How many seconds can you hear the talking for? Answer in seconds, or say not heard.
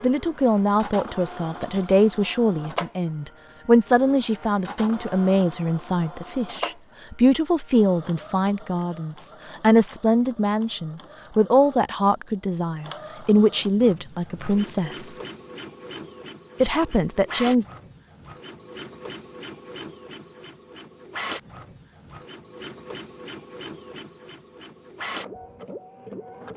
16 s.